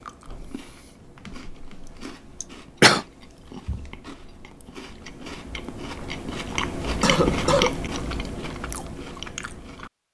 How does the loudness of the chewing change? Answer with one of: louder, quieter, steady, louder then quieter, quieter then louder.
louder then quieter.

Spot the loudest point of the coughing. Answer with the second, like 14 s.
3 s.